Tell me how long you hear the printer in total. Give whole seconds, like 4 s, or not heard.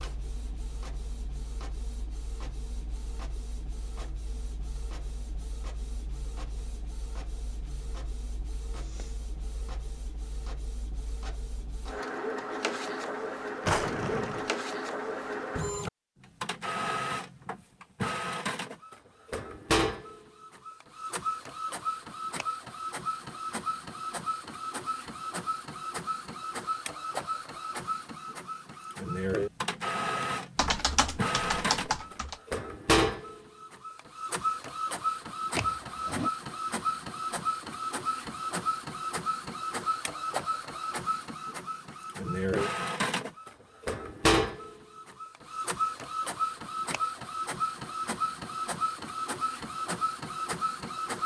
51 s.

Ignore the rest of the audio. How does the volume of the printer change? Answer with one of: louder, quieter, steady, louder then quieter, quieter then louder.
louder.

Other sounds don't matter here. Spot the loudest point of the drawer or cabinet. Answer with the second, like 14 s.
14 s.